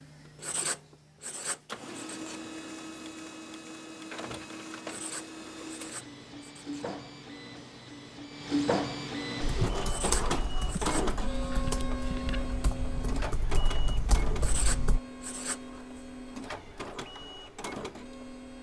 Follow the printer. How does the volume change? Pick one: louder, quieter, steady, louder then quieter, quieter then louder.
louder then quieter.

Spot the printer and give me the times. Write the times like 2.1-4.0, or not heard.
0.0-18.5.